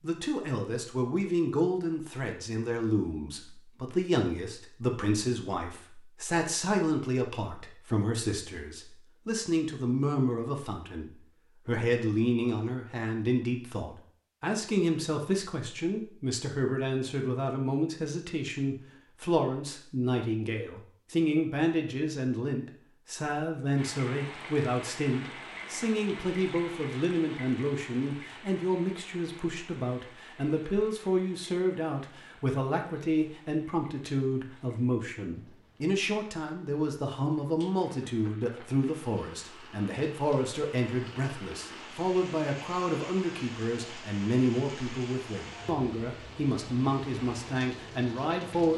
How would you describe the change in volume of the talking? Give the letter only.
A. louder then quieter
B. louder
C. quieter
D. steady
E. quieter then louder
D.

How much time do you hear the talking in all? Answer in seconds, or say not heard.
49 s.